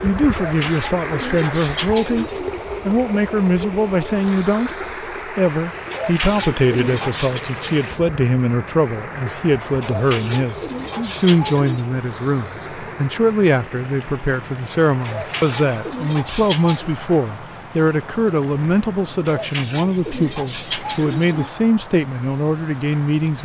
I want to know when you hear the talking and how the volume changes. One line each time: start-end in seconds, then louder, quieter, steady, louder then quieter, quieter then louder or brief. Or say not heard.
0.0-2.2 brief
2.9-23.4 steady.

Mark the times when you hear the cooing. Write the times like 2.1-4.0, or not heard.
0.3-2.5, 5.9-7.5, 9.8-11.8, 15.0-16.9, 19.2-21.6.